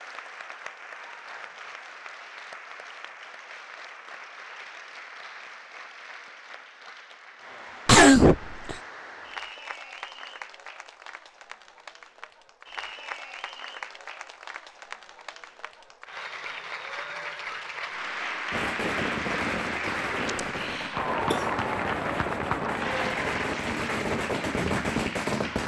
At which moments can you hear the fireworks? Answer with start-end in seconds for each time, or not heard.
18.5-25.6.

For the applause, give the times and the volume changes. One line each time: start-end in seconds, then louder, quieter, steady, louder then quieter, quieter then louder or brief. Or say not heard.
0.0-25.6 louder.